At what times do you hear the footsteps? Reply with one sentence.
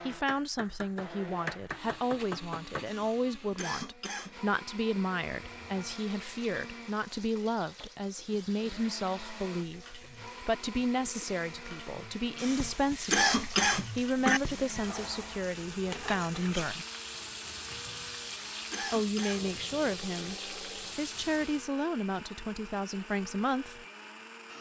The footsteps can't be heard in this clip.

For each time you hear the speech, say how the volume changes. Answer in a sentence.
You can hear the speech from 0.1 to 16.9 s, at a steady volume; and from 18.9 to 23.9 s, getting quieter then louder.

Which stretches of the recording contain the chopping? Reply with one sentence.
The chopping can be heard from 0.2 to 2.9 s.